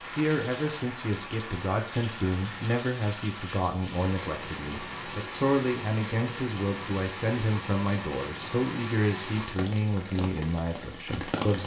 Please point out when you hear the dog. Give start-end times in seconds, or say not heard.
not heard.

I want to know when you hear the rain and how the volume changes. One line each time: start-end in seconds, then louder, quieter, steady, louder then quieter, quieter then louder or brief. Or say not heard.
0.0-11.6 steady.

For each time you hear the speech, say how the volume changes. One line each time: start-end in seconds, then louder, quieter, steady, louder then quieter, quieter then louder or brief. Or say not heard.
0.1-11.6 steady.